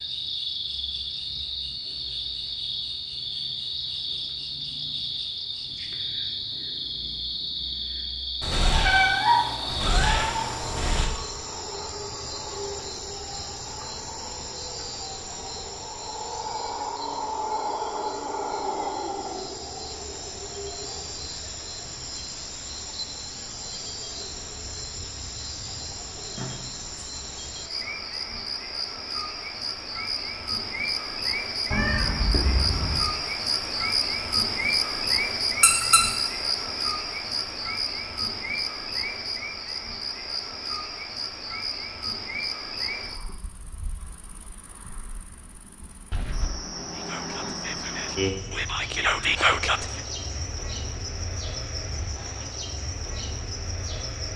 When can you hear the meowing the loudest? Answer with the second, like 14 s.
9 s.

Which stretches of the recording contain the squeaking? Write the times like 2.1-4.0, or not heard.
35.6-36.0.